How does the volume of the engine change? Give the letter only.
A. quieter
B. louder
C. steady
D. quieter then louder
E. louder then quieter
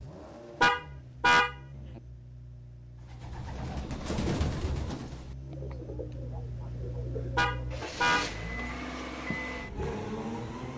B.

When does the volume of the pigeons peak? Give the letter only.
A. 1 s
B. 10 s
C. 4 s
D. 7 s
C.